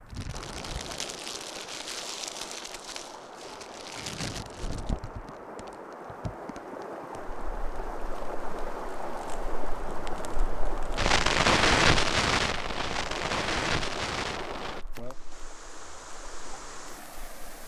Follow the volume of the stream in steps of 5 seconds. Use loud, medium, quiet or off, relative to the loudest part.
medium, loud, loud, medium.